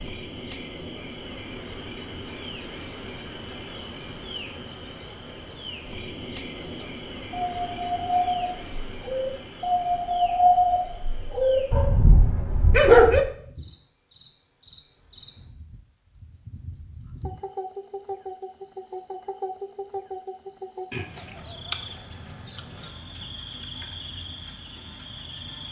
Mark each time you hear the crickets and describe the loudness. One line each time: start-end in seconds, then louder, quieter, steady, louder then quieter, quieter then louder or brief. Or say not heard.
0.0-25.6 quieter then louder.